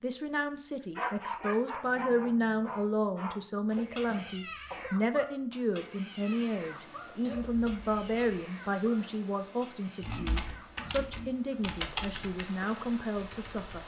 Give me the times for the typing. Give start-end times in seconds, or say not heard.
10.0-13.8.